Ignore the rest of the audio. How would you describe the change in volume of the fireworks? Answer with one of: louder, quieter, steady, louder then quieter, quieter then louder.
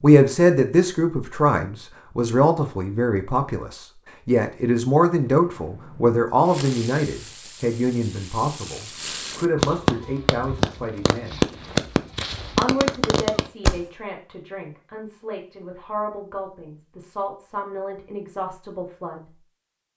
louder.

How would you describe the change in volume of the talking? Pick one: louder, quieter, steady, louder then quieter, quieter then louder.
quieter.